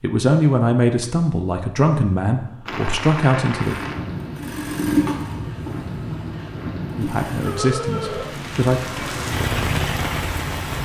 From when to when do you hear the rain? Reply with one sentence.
You can hear the rain from 2.6 to 10.8 s.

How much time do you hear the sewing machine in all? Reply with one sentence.
You can hear the sewing machine for 4 seconds altogether.